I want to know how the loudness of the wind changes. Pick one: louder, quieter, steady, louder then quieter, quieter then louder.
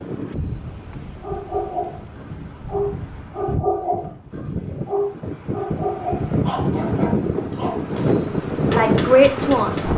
louder.